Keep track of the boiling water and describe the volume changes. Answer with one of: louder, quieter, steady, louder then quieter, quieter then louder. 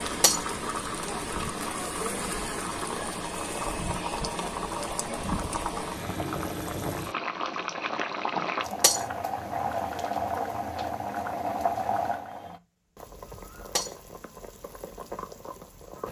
quieter.